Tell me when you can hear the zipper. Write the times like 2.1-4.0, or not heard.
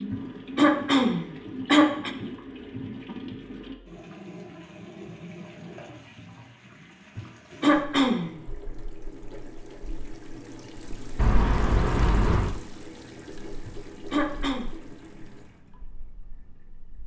not heard.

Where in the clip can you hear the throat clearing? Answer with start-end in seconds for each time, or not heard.
0.1-2.1, 7.2-8.3, 13.7-14.7.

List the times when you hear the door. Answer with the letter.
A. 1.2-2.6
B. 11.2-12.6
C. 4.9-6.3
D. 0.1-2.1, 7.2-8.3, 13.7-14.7
B.